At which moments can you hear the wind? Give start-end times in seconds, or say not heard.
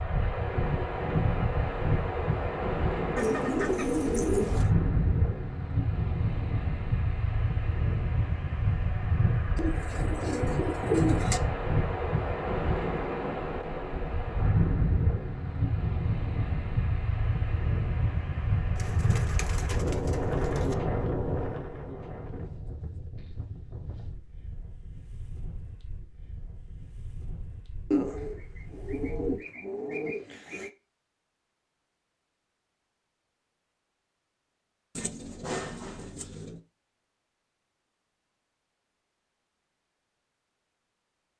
0.0-29.4.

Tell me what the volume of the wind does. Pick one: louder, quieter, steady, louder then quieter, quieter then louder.
quieter.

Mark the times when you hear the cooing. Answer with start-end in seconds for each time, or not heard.
3.1-4.7, 9.6-11.4, 18.8-20.8, 27.9-30.7, 35.0-36.6.